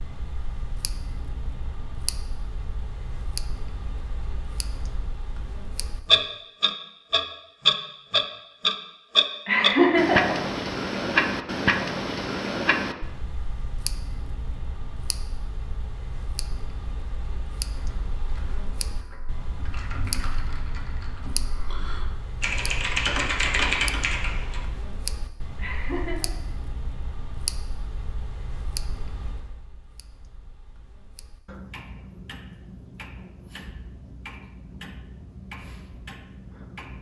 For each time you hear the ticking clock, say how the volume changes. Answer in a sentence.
The ticking clock can be heard from 0.0 to 36.9 s, getting louder then quieter.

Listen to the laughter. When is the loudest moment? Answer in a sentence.
The volume of the laughter peaks at 10 seconds.